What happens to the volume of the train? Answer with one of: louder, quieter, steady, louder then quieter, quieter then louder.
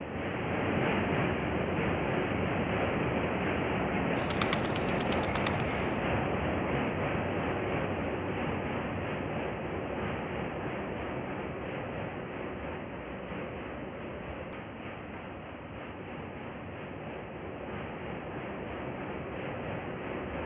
quieter.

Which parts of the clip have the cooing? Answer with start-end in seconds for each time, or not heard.
4.2-6.0.